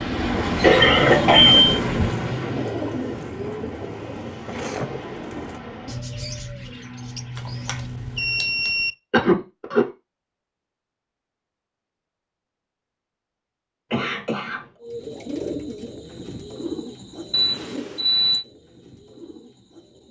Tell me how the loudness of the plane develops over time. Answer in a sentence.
The loudness of the plane goes down.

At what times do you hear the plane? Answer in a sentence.
You can hear the plane from 0.0 to 8.7 s.